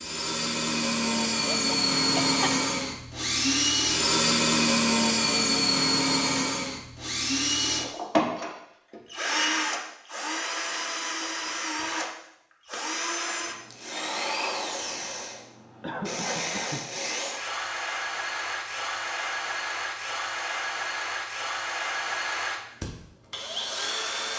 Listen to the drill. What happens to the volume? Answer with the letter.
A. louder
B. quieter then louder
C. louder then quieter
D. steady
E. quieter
E.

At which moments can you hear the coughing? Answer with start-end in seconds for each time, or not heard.
1.5-2.4, 15.8-16.9.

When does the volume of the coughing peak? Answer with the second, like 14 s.
16 s.